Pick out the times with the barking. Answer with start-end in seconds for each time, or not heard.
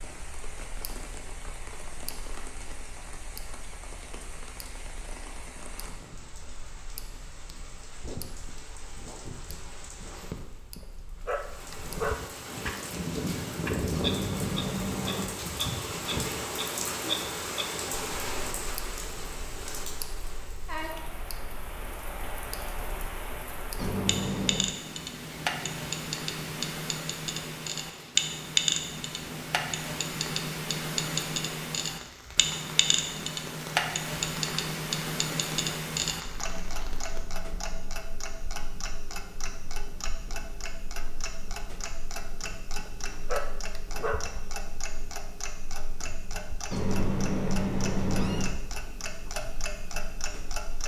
10.8-12.7, 42.8-44.4.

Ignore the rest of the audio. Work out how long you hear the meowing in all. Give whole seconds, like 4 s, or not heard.
4 s.